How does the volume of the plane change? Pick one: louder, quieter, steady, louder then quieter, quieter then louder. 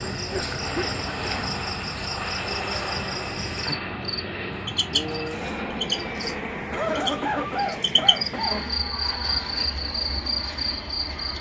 quieter.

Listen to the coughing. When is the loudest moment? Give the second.
7 s.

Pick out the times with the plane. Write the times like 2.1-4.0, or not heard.
0.0-11.3.